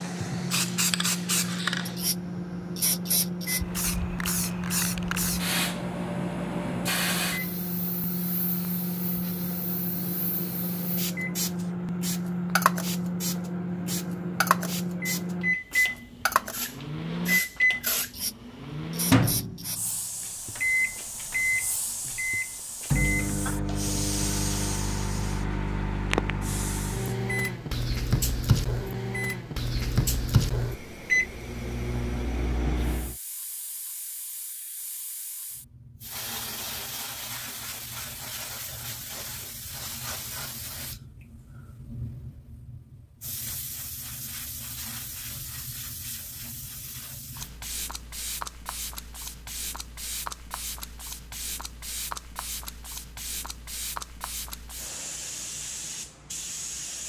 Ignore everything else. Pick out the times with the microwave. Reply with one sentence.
You can hear the microwave from 0.0 to 33.1 s.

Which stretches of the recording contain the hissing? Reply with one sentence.
The hissing can be heard from 0.0 to 27.1 s and from 32.8 to 57.0 s.